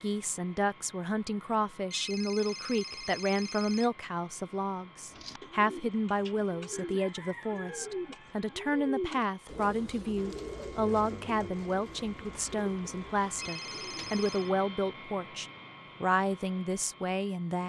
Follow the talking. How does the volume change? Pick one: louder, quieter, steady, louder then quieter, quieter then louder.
steady.